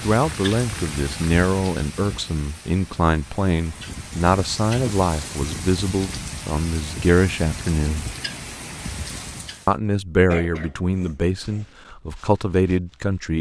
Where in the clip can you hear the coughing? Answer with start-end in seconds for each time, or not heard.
10.3-11.7.